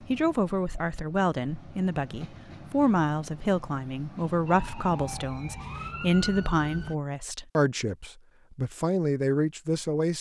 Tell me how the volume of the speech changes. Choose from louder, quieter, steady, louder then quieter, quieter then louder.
steady.